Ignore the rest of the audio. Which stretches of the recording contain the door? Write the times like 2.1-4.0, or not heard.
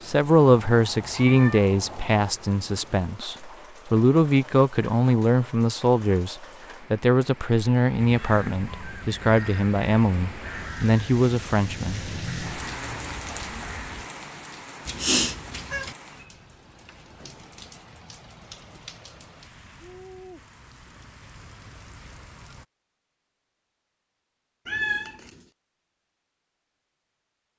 not heard.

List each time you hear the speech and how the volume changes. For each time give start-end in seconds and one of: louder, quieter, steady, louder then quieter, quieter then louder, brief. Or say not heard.
0.1-12.1 steady.